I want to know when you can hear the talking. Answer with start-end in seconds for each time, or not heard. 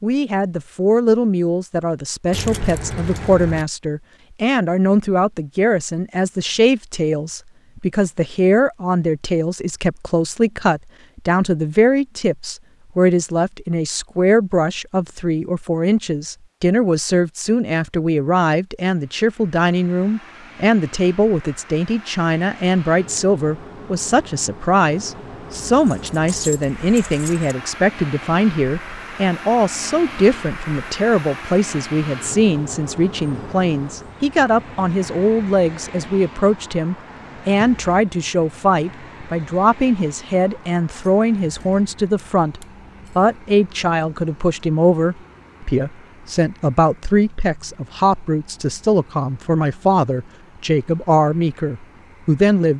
0.0-52.7.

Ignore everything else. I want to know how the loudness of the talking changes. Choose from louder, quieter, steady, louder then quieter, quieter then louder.
steady.